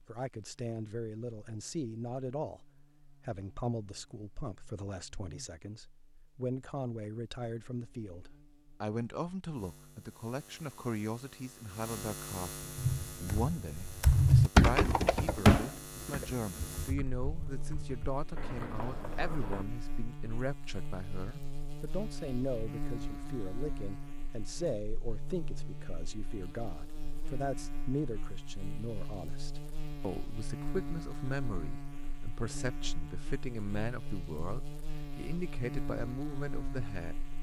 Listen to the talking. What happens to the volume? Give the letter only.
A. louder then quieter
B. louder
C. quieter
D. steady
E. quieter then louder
D.